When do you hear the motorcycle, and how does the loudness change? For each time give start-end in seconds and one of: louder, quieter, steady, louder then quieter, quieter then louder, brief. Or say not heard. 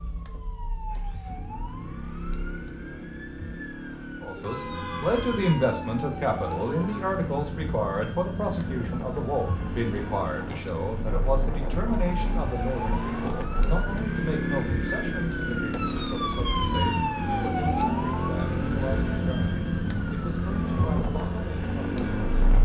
0.9-22.6 louder.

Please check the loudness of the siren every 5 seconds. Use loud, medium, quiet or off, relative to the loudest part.
quiet, medium, medium, loud, medium.